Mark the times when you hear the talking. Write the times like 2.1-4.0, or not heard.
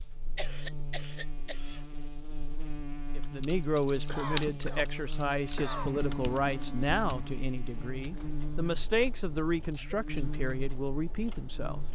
3.1-11.8.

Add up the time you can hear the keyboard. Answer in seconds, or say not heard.
9 s.